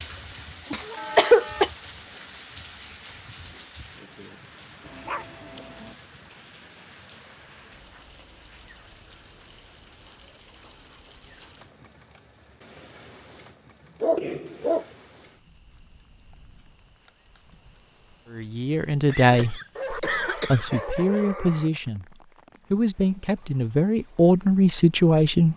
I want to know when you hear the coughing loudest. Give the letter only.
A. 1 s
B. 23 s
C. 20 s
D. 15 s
A.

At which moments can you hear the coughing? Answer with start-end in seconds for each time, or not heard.
0.7-1.7, 13.8-14.8, 19.1-20.7.